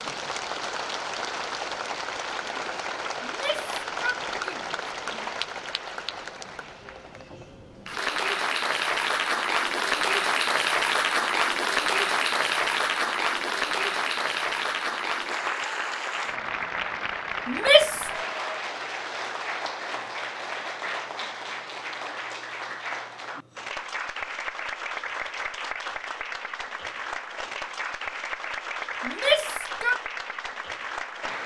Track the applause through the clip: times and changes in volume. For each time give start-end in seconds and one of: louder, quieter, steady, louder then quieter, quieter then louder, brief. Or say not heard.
0.0-31.4 louder then quieter.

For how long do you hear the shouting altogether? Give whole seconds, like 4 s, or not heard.
4 s.